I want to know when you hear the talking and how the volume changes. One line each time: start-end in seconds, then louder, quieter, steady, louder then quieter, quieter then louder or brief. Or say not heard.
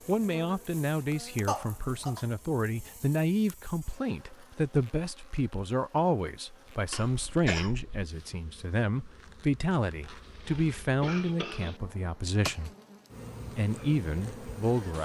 0.1-12.7 steady
13.6-15.0 brief.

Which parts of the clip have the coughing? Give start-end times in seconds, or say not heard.
1.4-2.2, 6.9-8.1, 10.4-11.8.